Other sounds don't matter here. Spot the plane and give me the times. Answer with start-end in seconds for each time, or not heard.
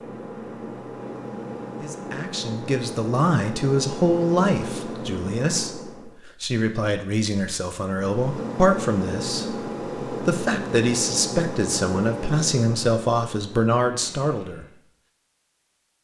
0.0-6.2, 7.8-14.8.